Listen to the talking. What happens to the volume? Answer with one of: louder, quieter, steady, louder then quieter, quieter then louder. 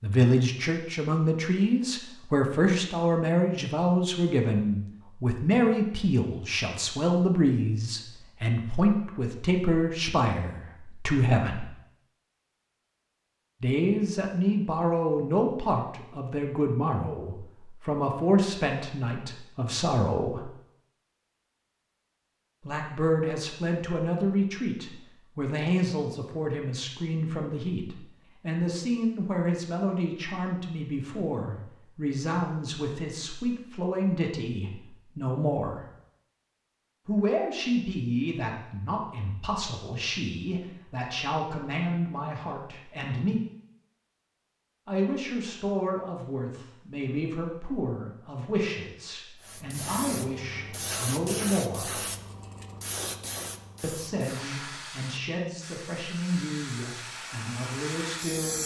quieter.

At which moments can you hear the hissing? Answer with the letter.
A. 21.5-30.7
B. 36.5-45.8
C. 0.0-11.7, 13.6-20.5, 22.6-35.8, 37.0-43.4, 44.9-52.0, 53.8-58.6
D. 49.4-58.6
D.